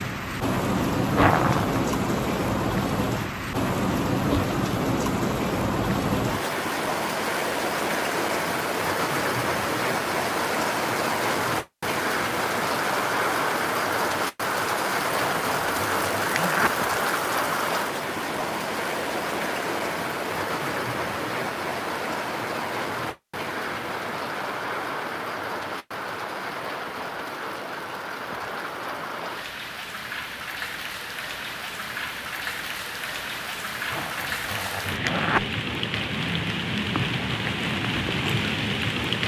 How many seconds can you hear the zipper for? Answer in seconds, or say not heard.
4 s.